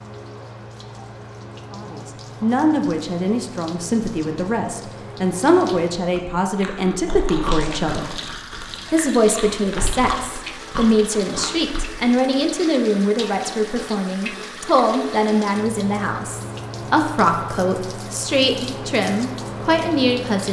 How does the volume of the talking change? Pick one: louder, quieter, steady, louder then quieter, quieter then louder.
steady.